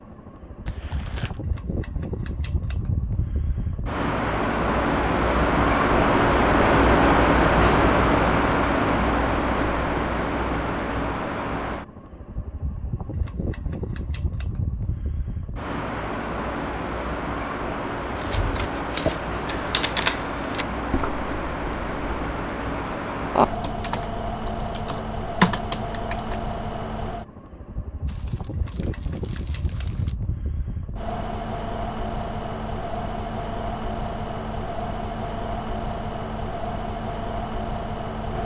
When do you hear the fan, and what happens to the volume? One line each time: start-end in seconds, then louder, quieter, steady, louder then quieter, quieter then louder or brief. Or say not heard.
0.0-38.4 quieter.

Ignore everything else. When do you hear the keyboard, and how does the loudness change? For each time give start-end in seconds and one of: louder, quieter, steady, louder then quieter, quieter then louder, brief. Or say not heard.
17.9-26.4 quieter then louder.